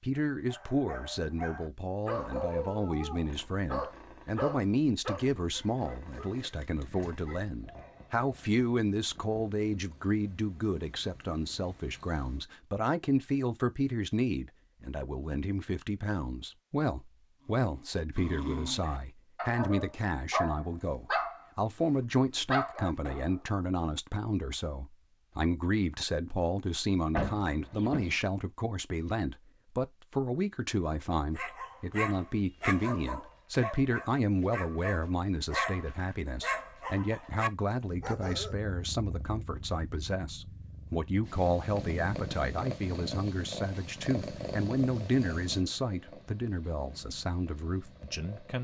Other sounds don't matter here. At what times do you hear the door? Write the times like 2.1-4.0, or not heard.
27.1-28.1.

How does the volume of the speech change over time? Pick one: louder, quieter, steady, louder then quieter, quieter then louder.
steady.